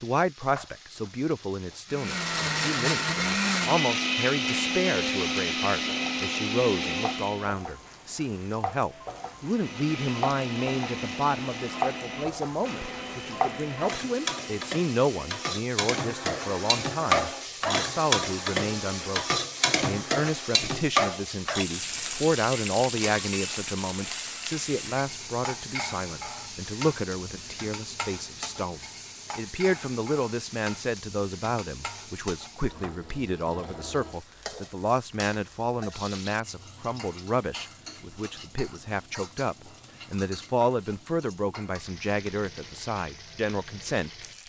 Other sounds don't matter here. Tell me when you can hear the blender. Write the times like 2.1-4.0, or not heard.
1.9-7.5, 9.4-20.6.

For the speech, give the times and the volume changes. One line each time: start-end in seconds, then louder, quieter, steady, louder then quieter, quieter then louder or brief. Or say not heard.
0.0-44.1 steady.